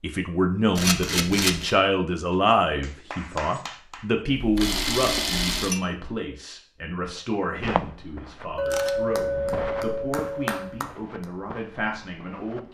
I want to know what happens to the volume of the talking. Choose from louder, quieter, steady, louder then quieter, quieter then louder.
quieter.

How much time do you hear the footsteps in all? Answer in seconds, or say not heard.
5 s.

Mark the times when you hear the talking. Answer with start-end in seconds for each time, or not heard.
0.0-12.6.